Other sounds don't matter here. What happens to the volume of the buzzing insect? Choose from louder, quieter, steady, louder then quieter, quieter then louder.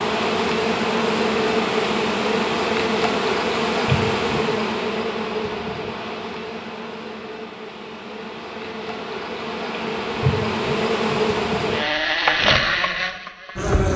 quieter then louder.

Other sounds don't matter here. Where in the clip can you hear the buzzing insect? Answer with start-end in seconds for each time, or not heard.
0.0-13.9.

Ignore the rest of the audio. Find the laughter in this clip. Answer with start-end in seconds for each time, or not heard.
3.9-4.5, 10.2-11.2.